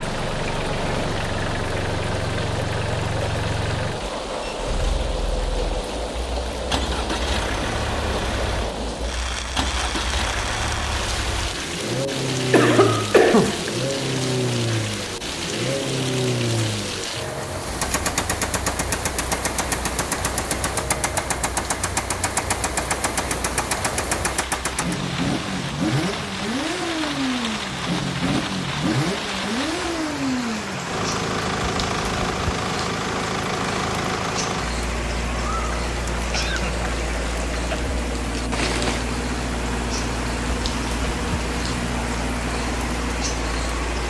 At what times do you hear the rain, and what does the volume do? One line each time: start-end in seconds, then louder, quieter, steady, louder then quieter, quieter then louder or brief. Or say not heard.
0.0-44.0 steady.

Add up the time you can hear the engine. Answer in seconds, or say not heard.
44 s.